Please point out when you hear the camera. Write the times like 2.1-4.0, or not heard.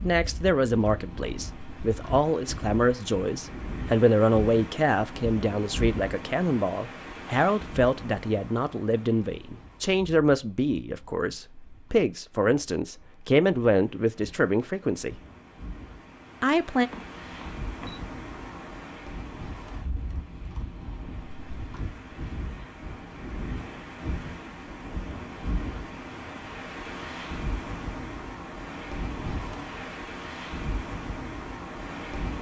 16.9-18.1.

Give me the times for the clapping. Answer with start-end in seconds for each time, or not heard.
not heard.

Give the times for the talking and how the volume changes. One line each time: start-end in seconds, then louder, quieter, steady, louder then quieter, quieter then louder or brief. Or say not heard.
0.0-15.2 steady
16.4-16.9 brief.